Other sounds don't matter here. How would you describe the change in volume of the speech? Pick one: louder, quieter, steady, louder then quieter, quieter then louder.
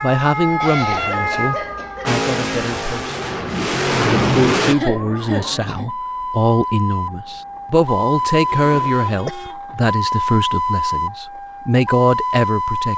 steady.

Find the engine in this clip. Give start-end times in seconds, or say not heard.
2.0-4.8.